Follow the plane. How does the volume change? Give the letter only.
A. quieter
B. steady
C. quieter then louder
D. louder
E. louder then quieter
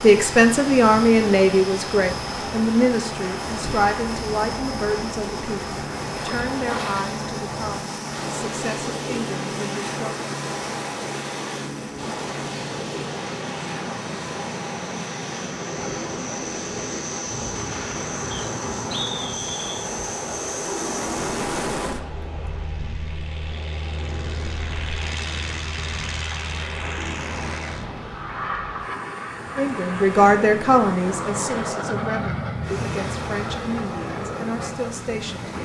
B.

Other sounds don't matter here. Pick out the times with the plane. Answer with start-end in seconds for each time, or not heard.
0.0-35.6.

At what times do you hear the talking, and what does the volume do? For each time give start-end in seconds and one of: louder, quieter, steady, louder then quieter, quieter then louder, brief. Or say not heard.
0.0-10.0 quieter
29.6-35.6 quieter.